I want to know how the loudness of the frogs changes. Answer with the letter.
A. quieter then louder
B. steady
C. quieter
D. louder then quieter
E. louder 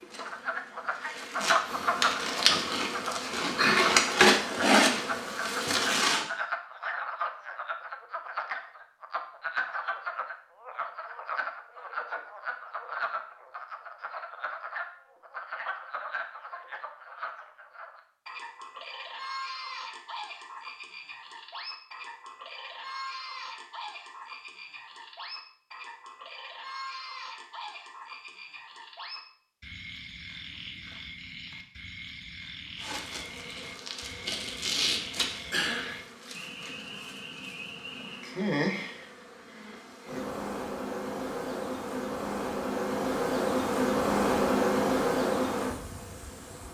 C.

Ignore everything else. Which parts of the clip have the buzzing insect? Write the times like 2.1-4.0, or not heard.
0.0-6.2, 32.8-46.7.